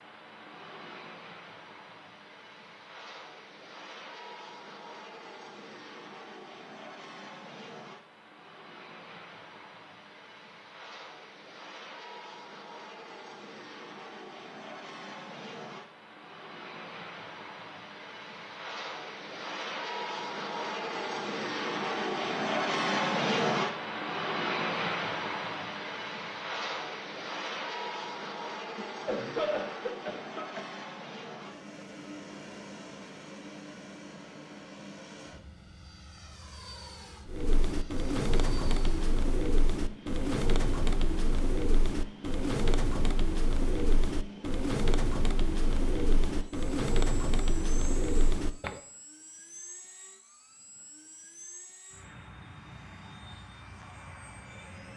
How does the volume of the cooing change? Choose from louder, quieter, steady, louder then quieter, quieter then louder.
steady.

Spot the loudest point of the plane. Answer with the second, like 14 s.
23 s.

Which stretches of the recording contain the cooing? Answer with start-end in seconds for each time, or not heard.
37.2-48.8.